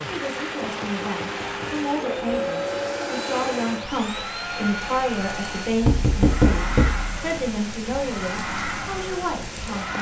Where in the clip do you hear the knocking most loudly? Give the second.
6 s.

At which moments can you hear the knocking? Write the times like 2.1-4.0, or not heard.
0.6-1.8, 5.8-7.1.